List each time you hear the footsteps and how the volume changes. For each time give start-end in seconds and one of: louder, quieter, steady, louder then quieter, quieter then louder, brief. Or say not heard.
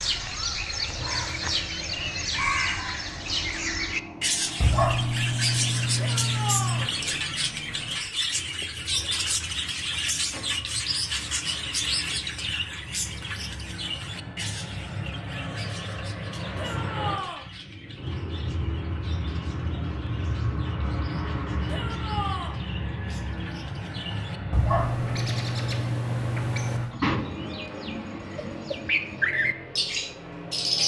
not heard.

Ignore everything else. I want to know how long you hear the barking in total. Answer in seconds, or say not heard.
5 s.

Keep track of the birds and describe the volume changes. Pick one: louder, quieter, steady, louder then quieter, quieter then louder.
quieter then louder.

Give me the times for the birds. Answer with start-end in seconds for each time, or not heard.
0.0-30.8.